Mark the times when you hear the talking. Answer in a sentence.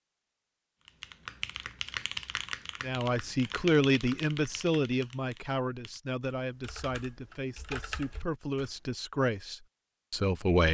You can hear the talking from 2.8 to 10.6 s.